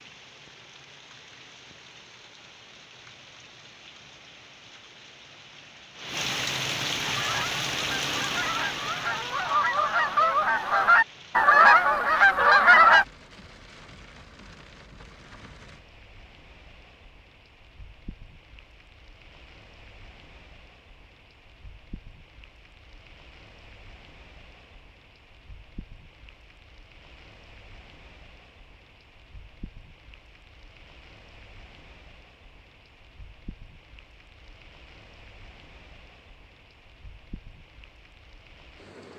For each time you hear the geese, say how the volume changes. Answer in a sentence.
You can hear the geese from 7.0 to 13.1 s, getting louder.